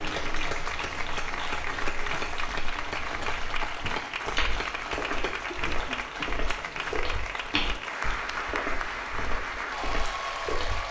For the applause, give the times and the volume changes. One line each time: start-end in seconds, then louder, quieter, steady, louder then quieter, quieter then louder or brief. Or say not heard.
0.0-10.8 steady.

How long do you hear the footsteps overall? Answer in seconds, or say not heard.
11 s.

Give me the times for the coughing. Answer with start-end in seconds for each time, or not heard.
5.2-6.8.